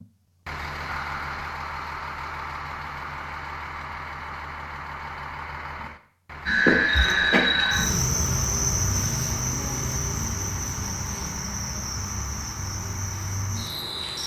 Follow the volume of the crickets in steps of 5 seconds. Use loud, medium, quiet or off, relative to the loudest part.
off, loud, medium.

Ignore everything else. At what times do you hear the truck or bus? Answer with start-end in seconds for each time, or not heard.
0.0-14.2.